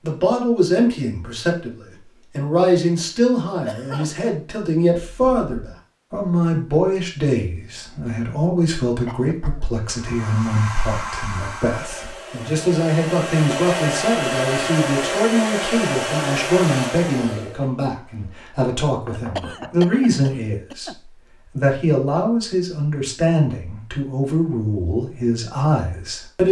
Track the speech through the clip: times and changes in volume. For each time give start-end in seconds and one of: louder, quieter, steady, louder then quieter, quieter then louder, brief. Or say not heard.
0.0-26.4 steady.